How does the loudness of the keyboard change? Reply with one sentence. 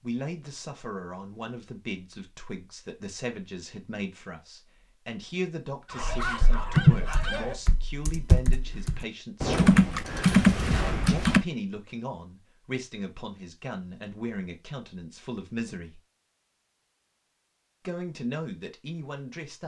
The volume of the keyboard goes down, then up.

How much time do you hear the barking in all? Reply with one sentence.
The barking can be heard for 2 seconds in total.